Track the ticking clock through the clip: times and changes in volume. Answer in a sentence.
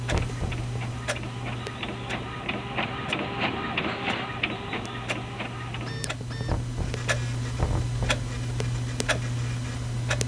You can hear the ticking clock from 0.0 to 10.2 s, getting quieter then louder.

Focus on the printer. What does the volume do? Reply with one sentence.
The loudness of the printer goes up, then down.